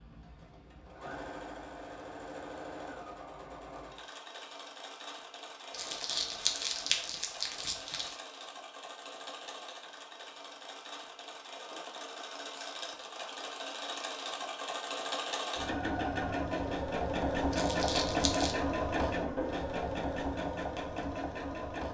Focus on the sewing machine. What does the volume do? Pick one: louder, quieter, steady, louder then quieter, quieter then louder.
louder.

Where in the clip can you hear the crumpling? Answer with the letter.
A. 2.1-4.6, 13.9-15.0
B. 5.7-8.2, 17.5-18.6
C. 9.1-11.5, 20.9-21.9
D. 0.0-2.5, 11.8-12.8
B.